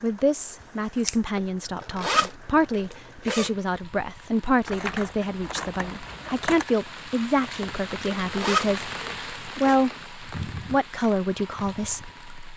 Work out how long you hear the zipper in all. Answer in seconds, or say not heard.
4 s.